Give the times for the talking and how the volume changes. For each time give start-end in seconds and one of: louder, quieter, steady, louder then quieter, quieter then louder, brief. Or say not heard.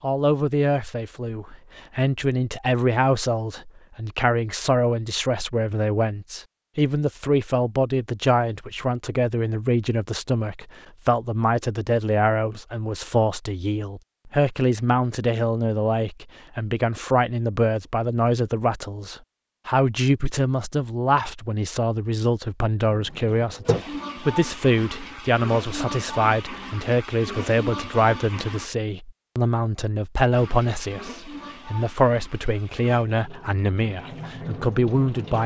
0.0-35.4 steady.